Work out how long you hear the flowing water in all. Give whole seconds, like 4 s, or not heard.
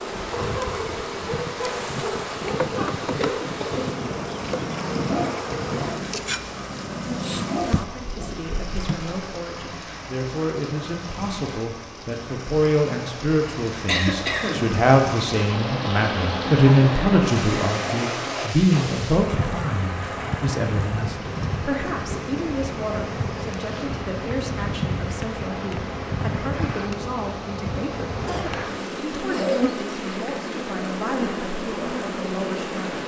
33 s.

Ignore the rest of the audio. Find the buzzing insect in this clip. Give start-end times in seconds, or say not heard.
0.0-9.2, 18.7-33.0.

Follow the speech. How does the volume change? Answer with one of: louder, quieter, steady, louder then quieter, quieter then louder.
louder then quieter.